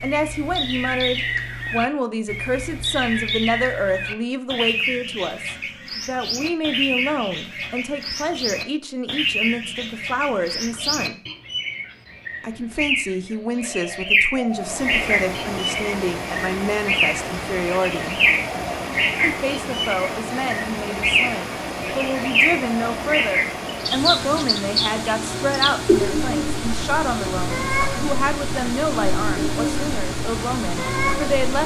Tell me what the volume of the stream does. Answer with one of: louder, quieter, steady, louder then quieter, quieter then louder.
steady.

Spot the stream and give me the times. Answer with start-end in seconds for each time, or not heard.
14.4-31.6.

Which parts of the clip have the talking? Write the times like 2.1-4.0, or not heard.
0.0-11.2, 12.4-18.2, 19.2-31.6.